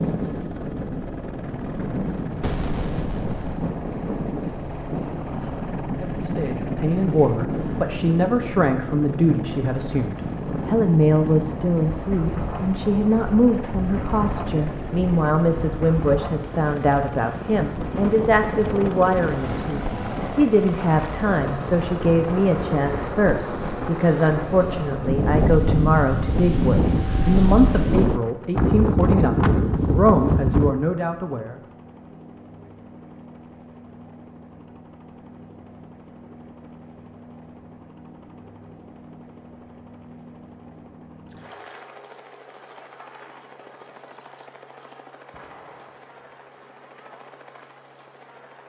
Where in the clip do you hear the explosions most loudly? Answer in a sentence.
The loudest moment of the explosions is at 3 seconds.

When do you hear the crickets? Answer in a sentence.
The crickets can't be heard in this clip.